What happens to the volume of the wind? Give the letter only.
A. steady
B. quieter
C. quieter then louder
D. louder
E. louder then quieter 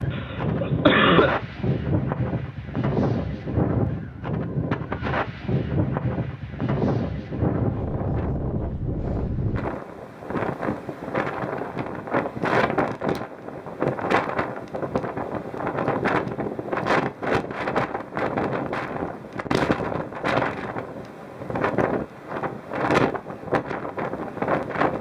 A.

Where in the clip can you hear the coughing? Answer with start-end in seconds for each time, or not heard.
0.1-1.4.